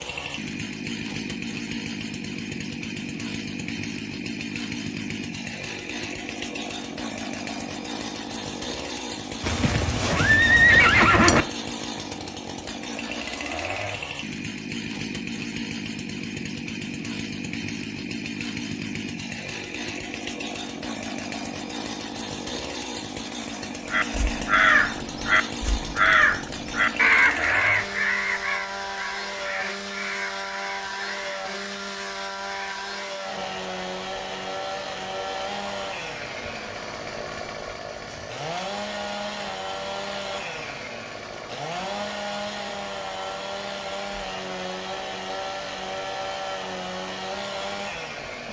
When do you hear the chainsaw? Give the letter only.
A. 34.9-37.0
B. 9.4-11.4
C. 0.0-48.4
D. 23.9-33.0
C.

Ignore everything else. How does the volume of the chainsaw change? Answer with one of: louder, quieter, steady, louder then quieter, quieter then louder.
steady.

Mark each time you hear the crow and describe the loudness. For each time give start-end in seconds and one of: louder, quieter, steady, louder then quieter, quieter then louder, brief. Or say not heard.
23.9-33.0 quieter.